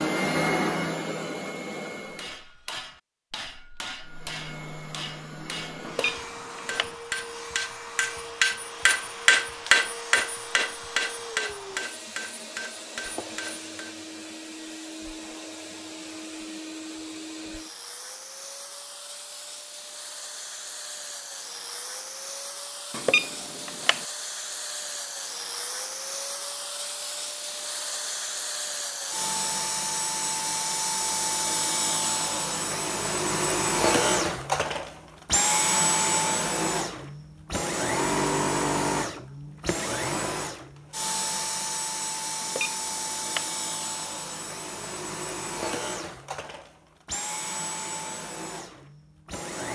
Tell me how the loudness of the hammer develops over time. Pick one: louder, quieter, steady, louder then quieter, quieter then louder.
louder then quieter.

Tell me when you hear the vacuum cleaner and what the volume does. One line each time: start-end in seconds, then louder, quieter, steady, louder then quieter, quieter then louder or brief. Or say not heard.
0.0-2.5 brief
4.0-49.7 louder then quieter.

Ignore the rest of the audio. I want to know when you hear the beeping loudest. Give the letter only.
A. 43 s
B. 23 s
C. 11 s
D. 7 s
B.